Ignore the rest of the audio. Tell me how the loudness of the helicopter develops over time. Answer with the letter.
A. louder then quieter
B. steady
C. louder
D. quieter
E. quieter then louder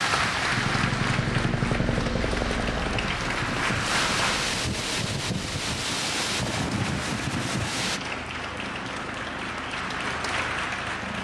D.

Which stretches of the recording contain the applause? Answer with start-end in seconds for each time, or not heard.
0.0-4.5, 6.5-11.1.